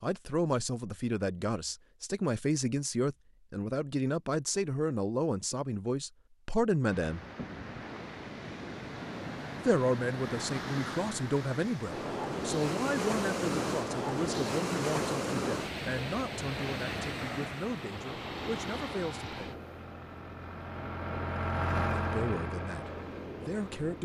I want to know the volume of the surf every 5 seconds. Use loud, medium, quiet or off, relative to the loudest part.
off, medium, loud, loud, medium.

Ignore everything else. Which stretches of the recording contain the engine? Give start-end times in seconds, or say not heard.
18.3-23.9.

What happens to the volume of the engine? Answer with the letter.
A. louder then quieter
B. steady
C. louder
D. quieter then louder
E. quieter
A.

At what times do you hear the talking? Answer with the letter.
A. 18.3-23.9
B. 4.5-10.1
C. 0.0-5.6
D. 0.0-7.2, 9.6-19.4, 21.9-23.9
D.